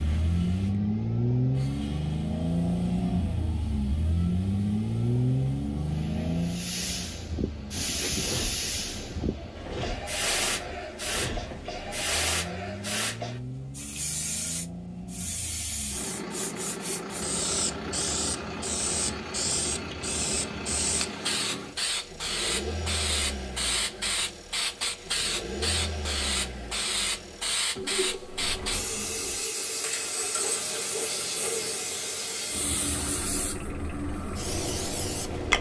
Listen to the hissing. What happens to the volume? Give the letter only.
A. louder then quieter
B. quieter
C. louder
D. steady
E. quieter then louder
C.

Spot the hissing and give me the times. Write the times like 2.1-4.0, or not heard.
0.0-35.5.